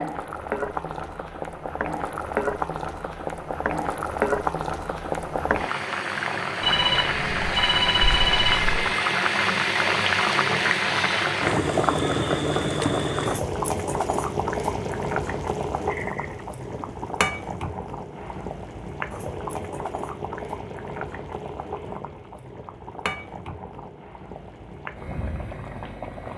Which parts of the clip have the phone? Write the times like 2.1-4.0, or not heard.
6.6-8.8, 15.8-17.1.